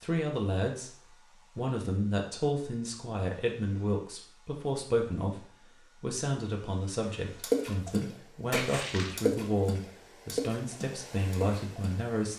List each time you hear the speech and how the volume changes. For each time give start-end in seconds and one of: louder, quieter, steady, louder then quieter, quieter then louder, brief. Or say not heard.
0.0-12.3 steady.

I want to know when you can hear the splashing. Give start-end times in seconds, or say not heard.
7.4-12.0.